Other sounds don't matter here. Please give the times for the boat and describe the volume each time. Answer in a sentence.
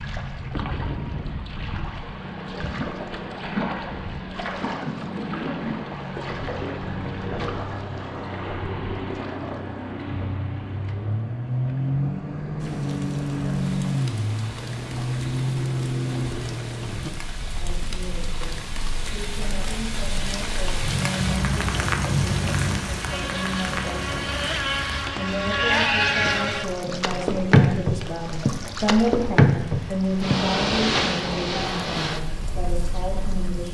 You can hear the boat from 0.0 to 33.6 s, getting louder.